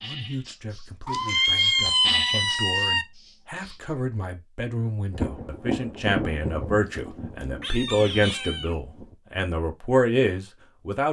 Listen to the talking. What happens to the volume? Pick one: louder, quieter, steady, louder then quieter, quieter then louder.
louder.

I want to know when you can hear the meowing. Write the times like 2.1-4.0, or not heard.
1.1-3.0, 7.4-8.8.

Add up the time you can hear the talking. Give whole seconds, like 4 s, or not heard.
11 s.